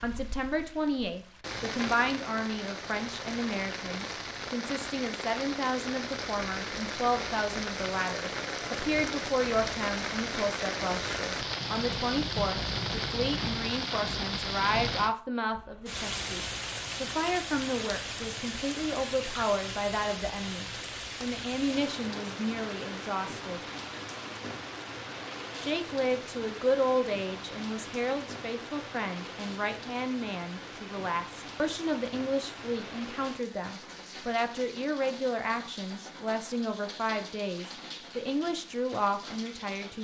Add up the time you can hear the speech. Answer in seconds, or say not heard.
38 s.